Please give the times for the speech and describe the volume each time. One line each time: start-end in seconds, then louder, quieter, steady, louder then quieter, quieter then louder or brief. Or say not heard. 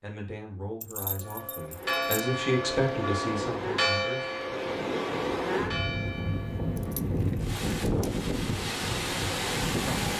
0.0-4.3 louder then quieter.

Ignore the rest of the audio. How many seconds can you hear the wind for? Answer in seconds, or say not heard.
8 s.